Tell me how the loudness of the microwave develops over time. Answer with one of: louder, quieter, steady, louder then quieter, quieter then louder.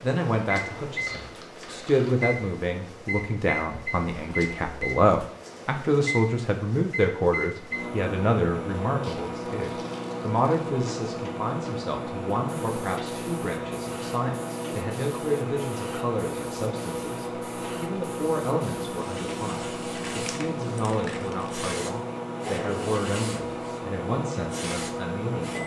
steady.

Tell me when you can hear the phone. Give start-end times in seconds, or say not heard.
not heard.